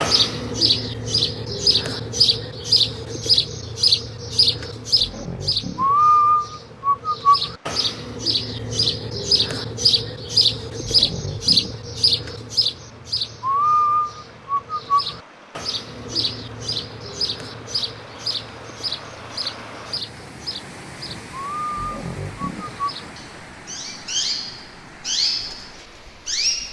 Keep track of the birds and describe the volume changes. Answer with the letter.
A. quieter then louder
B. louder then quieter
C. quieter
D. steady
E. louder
C.